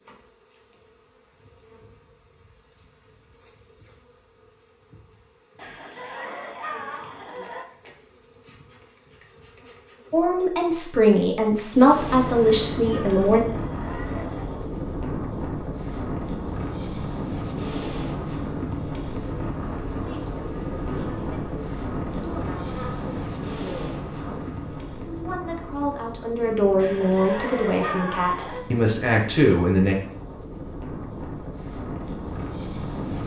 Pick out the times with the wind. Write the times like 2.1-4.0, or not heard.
11.8-33.2.